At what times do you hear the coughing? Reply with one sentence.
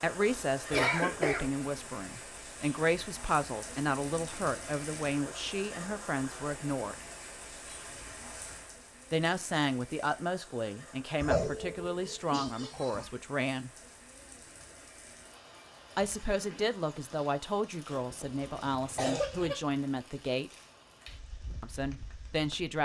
You can hear the coughing from 0.7 to 1.5 s, from 11.2 to 13.1 s and from 17.9 to 19.6 s.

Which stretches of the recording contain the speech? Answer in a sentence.
The speech can be heard from 0.0 to 7.0 s, from 9.1 to 13.7 s, from 15.9 to 20.5 s and from 21.6 to 22.7 s.